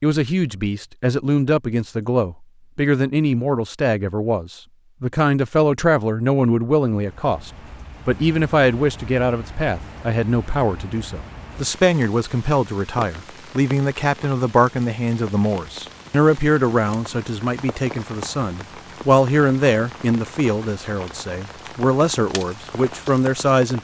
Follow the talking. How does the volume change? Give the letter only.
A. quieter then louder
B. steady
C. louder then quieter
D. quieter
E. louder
B.